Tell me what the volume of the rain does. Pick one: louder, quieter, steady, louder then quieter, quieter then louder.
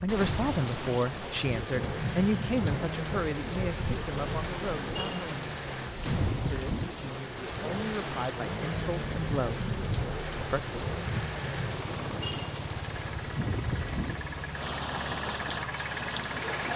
steady.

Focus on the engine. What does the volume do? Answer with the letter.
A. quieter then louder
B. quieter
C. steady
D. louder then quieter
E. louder
C.